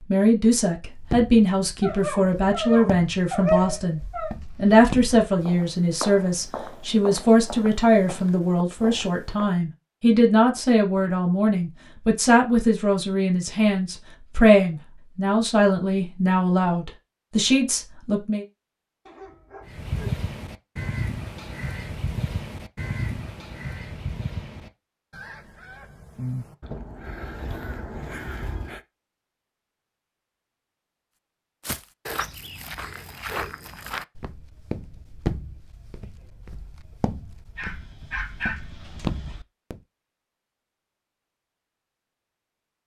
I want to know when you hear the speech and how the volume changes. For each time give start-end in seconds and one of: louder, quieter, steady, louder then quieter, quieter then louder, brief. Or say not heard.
0.1-18.4 steady.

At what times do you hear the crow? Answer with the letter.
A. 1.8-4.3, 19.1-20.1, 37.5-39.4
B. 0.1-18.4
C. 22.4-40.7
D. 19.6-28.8
D.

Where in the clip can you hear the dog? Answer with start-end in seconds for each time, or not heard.
1.8-4.3, 19.1-20.1, 37.5-39.4.